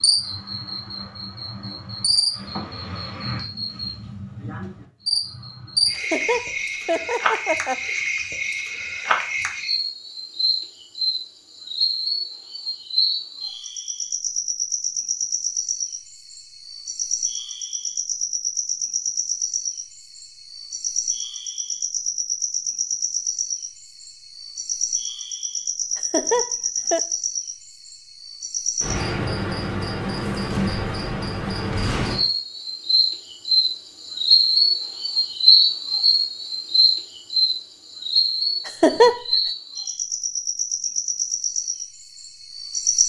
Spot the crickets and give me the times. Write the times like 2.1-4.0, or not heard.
0.0-43.0.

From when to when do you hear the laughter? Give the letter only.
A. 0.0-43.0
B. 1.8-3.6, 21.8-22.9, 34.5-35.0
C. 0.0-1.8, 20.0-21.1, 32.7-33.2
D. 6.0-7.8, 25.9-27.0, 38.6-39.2
D.